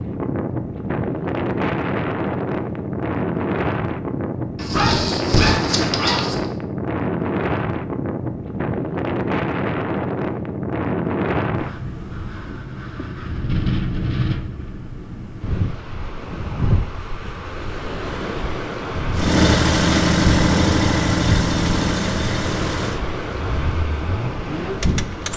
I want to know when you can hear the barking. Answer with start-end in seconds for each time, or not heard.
4.5-6.5.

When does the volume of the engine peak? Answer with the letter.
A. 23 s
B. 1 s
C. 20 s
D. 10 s
C.